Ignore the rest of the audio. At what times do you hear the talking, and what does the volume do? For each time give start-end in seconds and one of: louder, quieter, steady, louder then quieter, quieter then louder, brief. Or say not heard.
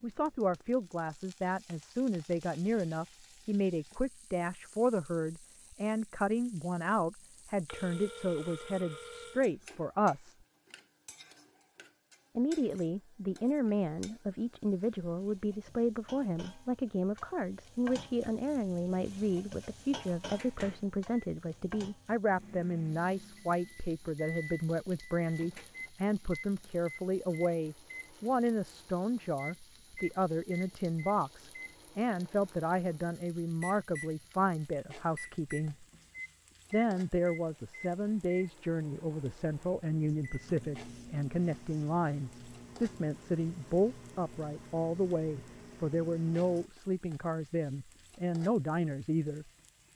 0.0-10.3 steady
12.3-35.9 steady
36.7-49.5 steady.